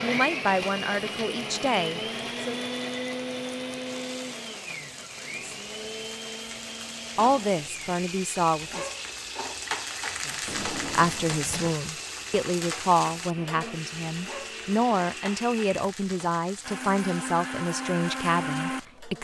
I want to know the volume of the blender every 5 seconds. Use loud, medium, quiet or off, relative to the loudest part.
loud, medium, medium, loud.